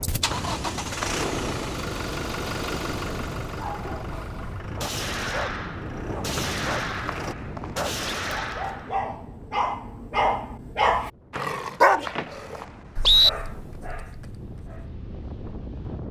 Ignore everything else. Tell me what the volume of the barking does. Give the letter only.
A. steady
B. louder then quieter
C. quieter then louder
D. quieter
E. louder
B.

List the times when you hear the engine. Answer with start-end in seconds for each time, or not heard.
0.0-7.3.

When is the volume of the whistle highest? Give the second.
13 s.